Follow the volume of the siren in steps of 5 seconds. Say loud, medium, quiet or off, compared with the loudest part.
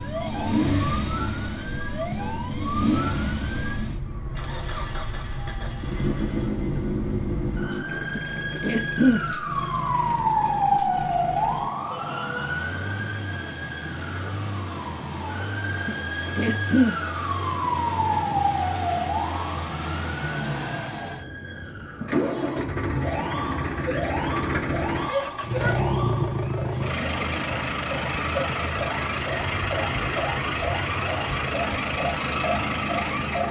medium, loud, loud, loud, medium, medium, medium.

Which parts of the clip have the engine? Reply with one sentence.
You can hear the engine from 0.0 to 33.4 s.